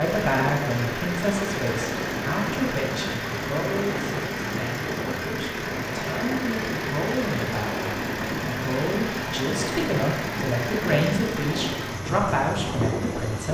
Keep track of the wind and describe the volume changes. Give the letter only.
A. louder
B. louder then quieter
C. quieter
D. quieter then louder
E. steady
E.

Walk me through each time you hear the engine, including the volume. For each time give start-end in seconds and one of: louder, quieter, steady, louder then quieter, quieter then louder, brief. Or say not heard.
0.0-13.4 steady.